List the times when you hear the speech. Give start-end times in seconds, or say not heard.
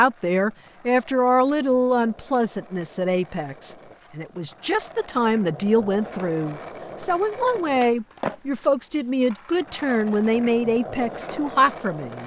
0.0-12.2.